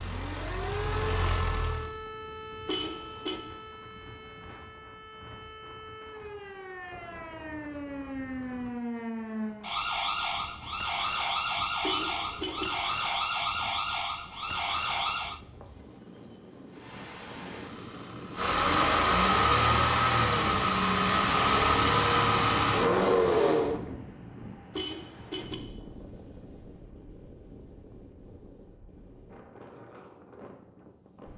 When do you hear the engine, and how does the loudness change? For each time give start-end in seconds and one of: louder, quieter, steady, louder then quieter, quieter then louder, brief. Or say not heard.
0.0-1.9 brief
16.7-23.8 louder.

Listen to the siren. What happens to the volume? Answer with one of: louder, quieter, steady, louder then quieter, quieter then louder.
quieter then louder.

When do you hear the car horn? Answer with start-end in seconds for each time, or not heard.
2.6-3.4, 11.8-12.7, 24.7-25.6.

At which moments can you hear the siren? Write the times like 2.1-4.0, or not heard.
0.0-15.4.